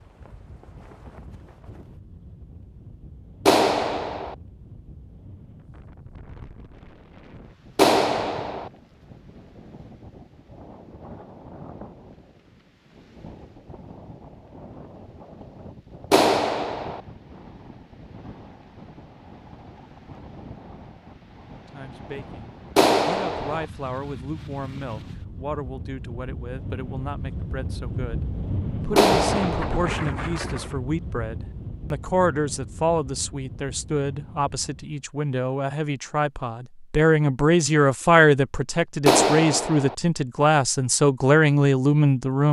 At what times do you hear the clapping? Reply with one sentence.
The clapping can be heard from 3.5 to 4.3 s, from 7.8 to 8.7 s, from 16.1 to 17.0 s, from 22.8 to 23.6 s, from 28.9 to 29.9 s and from 39.0 to 40.0 s.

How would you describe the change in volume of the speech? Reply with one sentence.
The loudness of the speech goes up.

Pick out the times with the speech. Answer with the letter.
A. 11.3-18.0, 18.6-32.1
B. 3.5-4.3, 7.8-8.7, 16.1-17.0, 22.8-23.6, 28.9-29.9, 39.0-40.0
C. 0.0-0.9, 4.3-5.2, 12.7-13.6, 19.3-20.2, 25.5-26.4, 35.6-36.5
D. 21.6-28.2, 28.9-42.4
D.